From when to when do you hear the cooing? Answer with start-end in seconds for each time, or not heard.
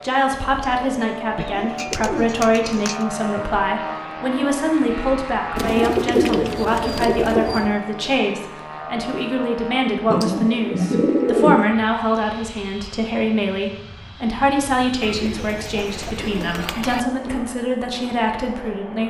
1.4-3.0, 5.5-7.8, 10.1-11.8, 15.0-17.0.